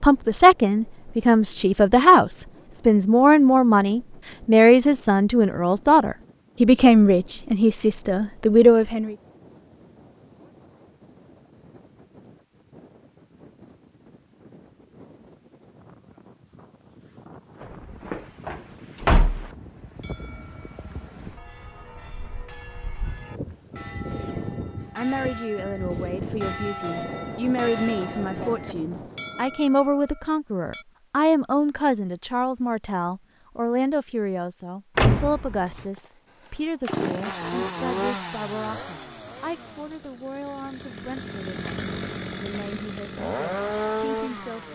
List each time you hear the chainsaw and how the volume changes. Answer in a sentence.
The chainsaw can be heard from 36.0 to 44.7 s, getting quieter then louder.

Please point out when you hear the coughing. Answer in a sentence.
You can't hear the coughing here.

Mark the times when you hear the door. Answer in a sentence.
The door can be heard from 17.6 to 19.5 s and from 35.0 to 35.9 s.